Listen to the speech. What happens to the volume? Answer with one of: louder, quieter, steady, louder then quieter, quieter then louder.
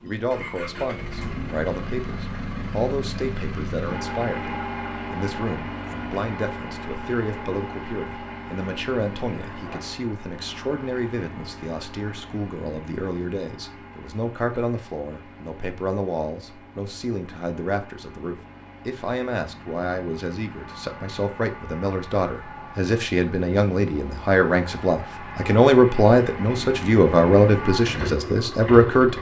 louder.